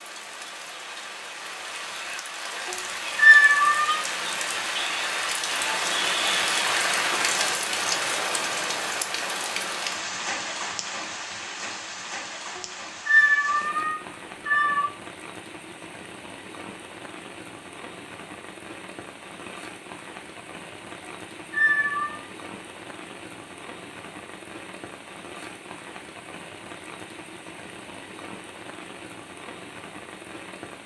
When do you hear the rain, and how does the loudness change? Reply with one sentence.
The rain can be heard from 0.0 to 30.8 s, getting quieter.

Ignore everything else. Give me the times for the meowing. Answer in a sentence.
The meowing can be heard from 3.1 to 4.0 s, from 12.6 to 14.9 s and from 21.5 to 22.2 s.